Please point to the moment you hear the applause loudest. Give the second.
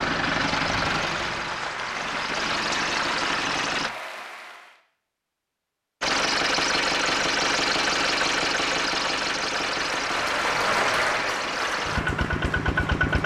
11 s.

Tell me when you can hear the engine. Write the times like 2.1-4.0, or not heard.
0.0-3.9, 6.0-13.2.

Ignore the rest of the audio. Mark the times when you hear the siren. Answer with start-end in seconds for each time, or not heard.
not heard.